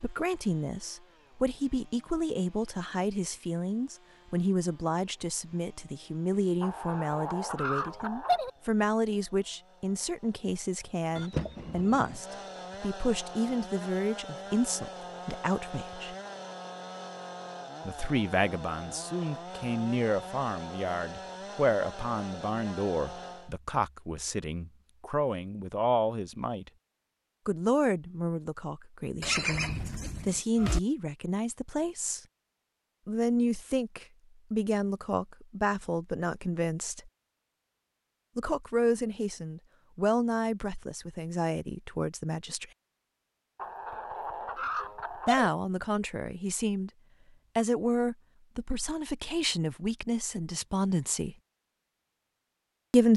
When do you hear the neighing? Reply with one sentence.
You can hear the neighing from 11.2 to 12.2 s and from 29.2 to 30.8 s.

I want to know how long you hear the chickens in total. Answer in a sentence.
You can hear the chickens for 4 seconds altogether.